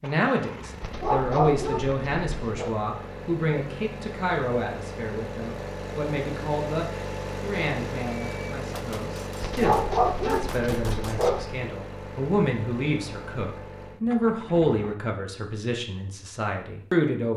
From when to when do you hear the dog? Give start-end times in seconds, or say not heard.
0.8-2.7, 9.4-11.6.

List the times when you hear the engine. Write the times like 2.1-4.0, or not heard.
0.0-14.9.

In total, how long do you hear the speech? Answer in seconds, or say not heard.
17 s.